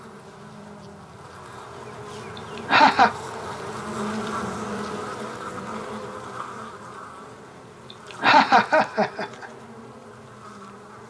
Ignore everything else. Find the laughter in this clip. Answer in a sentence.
You can hear the laughter from 2.6 to 3.1 s and from 8.2 to 9.4 s.